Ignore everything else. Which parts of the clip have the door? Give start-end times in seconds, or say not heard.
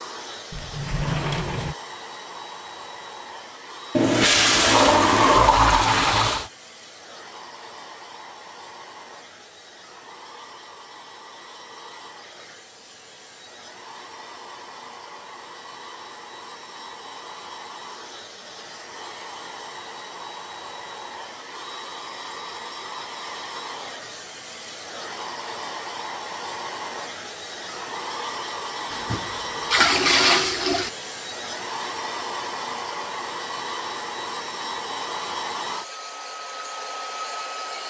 0.5-1.8.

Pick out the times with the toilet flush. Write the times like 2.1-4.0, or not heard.
4.0-6.5, 28.9-30.9.